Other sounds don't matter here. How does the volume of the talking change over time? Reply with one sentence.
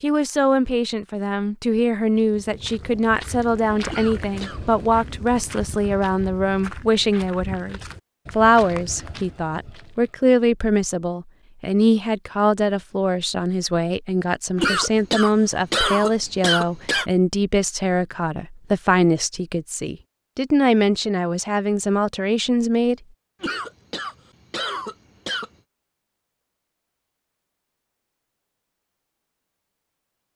The loudness of the talking stays about the same.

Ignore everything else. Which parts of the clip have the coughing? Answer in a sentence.
You can hear the coughing from 3.9 to 4.6 s, from 14.6 to 17.1 s and from 23.4 to 25.5 s.